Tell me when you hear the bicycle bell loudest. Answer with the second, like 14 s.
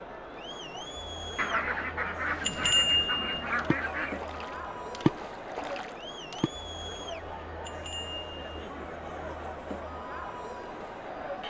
3 s.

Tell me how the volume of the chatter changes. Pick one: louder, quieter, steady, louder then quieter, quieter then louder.
steady.